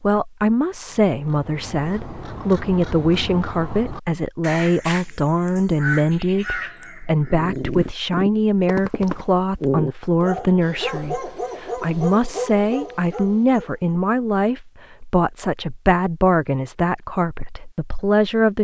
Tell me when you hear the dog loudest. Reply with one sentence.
The volume of the dog peaks at 10 seconds.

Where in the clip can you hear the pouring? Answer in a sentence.
The pouring can't be heard in this clip.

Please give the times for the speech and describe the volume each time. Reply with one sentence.
The speech can be heard from 0.0 to 18.5 s, at a steady volume.